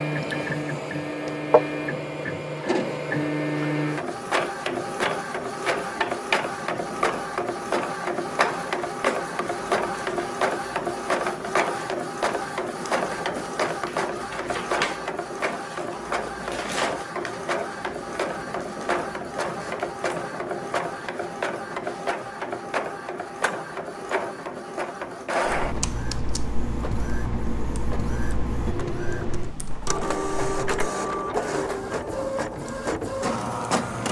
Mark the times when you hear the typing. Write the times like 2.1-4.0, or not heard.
25.4-30.9.